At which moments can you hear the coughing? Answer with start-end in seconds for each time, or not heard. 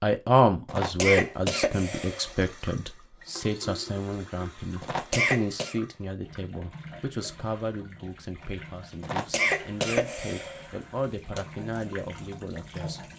0.7-2.3, 4.8-5.8, 9.0-11.4.